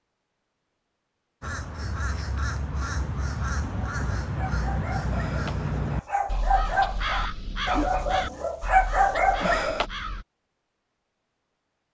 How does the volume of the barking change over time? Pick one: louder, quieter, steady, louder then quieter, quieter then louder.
louder.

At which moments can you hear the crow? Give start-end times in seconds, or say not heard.
1.4-10.2.